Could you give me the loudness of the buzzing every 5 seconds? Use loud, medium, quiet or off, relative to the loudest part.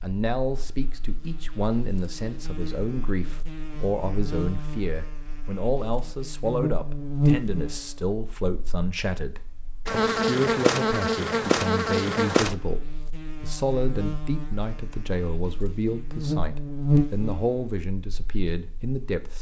quiet, loud, loud, loud.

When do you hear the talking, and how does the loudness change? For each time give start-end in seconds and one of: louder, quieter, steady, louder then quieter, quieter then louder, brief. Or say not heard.
0.0-19.3 steady.